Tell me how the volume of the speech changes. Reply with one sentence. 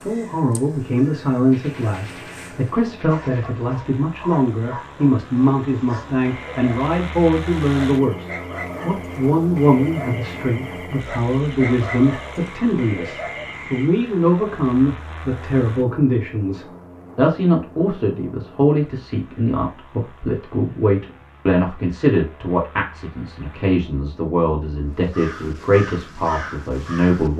The volume of the speech stays about the same.